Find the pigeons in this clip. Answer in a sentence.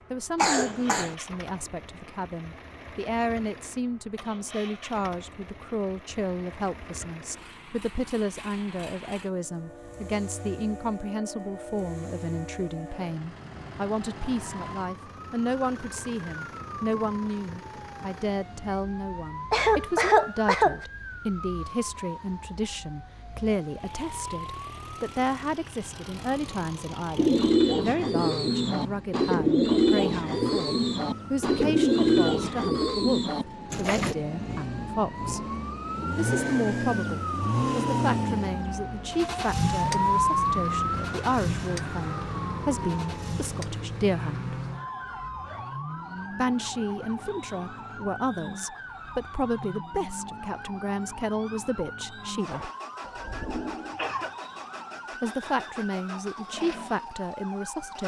The pigeons can be heard from 27.1 to 34.1 s.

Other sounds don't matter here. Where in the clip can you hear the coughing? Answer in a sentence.
You can hear the coughing from 0.3 to 1.1 s, from 19.5 to 20.8 s and from 52.5 to 54.3 s.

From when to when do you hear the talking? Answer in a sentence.
The talking can be heard from 0.1 to 35.5 s, from 36.1 to 44.5 s, from 46.4 to 52.7 s and from 55.2 to 58.0 s.